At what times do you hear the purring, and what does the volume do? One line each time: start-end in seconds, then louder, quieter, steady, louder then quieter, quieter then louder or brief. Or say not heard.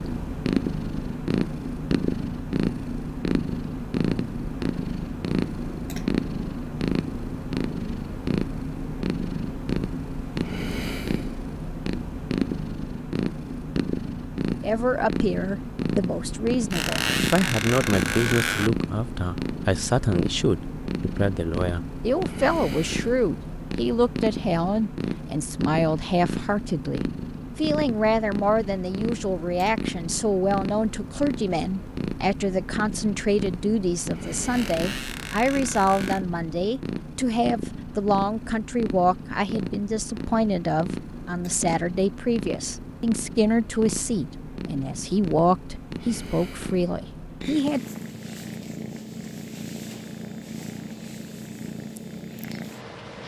0.0-53.2 quieter.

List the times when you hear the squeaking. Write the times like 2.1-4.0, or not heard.
16.7-18.7, 34.5-36.2.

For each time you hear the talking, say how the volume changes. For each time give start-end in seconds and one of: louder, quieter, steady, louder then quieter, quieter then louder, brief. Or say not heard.
14.6-47.8 steady.